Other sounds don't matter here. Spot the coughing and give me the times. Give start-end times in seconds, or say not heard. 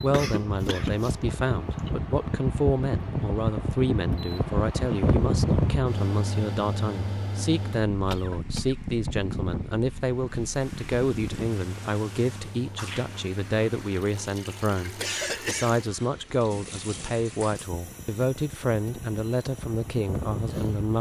0.1-1.9, 8.1-8.8, 14.9-15.9.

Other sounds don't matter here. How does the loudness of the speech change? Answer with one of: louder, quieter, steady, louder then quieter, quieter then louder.
steady.